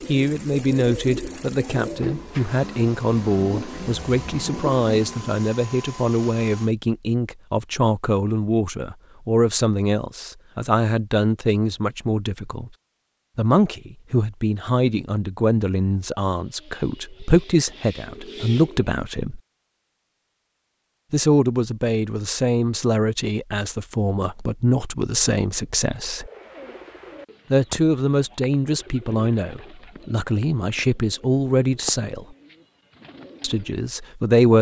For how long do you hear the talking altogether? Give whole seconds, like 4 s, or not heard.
30 s.